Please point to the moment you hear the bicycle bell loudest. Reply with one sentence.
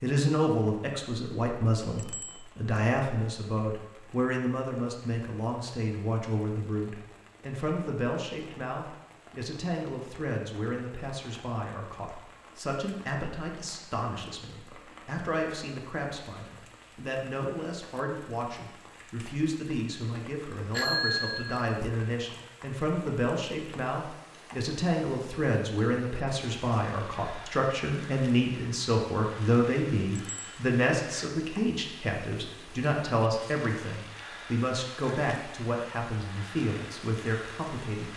The volume of the bicycle bell peaks at 21 seconds.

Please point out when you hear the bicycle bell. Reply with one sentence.
You can hear the bicycle bell from 1.9 to 2.5 s, from 20.7 to 21.9 s and from 30.1 to 30.6 s.